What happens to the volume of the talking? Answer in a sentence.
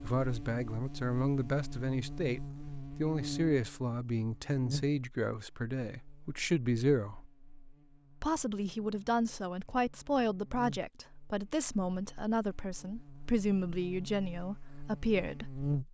The volume of the talking stays about the same.